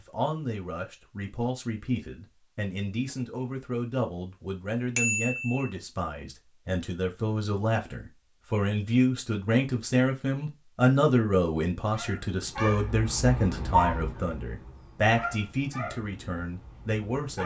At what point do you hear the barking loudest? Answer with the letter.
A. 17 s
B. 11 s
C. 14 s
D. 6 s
C.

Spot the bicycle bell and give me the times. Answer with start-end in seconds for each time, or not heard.
5.0-5.7.